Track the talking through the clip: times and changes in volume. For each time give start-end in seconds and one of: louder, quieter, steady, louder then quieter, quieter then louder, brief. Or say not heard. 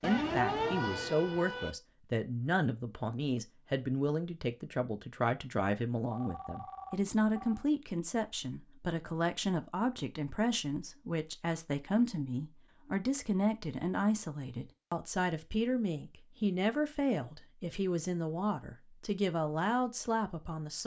0.0-20.8 steady.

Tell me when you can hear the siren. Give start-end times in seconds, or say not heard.
0.0-1.8.